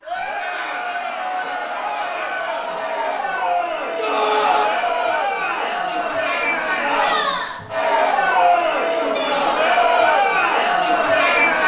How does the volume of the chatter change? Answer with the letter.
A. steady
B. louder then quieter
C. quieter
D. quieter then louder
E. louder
E.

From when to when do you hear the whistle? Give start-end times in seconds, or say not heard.
not heard.